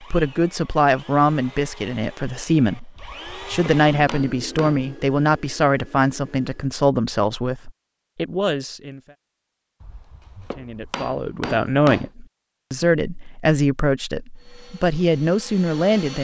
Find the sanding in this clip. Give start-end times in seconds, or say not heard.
not heard.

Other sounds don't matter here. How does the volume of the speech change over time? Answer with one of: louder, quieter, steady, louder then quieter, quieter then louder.
steady.